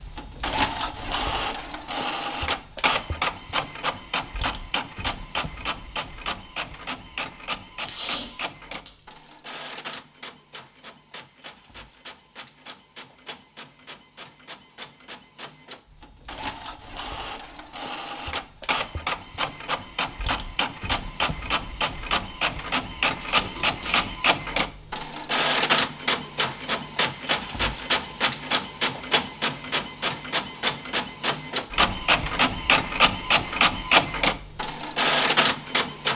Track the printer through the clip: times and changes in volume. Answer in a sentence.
The printer can be heard from 0.0 to 36.1 s, getting quieter then louder.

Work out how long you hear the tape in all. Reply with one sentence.
You can hear the tape for 2 seconds altogether.